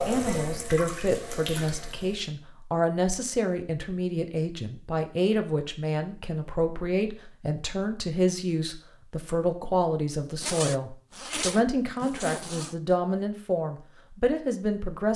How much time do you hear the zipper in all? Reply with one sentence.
The zipper can be heard for 2 seconds in total.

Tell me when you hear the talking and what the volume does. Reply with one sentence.
The talking can be heard from 0.1 to 15.1 s, at a steady volume.